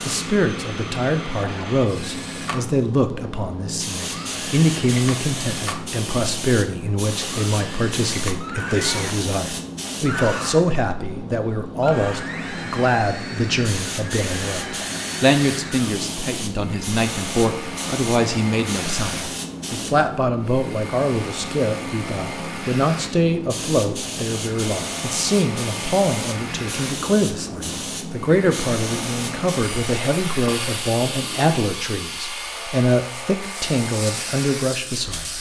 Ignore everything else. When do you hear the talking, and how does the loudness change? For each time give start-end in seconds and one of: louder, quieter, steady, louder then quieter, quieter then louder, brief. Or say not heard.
0.0-35.3 steady.